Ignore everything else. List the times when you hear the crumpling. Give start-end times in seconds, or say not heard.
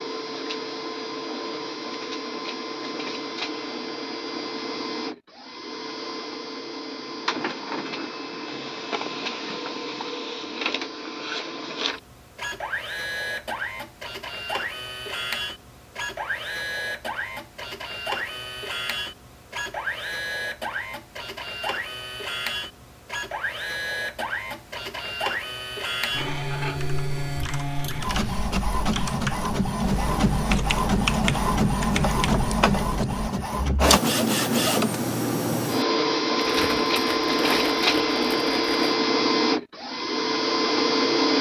36.4-38.8.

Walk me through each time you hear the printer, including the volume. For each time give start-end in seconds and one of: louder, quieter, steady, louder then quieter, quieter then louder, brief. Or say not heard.
0.0-41.3 louder.